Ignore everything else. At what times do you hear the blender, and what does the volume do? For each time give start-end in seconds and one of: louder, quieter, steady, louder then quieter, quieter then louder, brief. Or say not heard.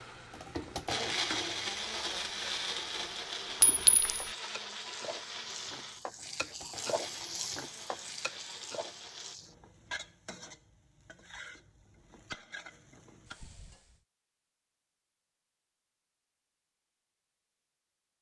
0.0-9.3 quieter.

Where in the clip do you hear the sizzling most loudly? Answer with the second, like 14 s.
7 s.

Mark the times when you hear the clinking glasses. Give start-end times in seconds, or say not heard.
3.6-4.2.